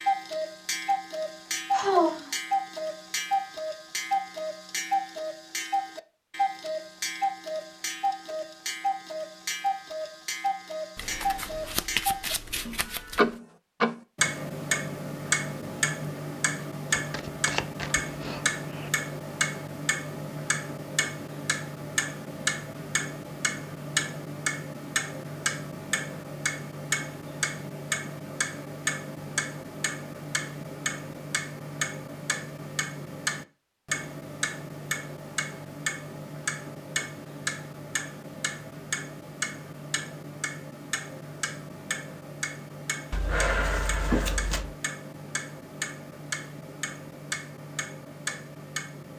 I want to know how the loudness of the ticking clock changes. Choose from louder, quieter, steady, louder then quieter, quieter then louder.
quieter.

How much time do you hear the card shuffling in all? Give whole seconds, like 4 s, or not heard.
6 s.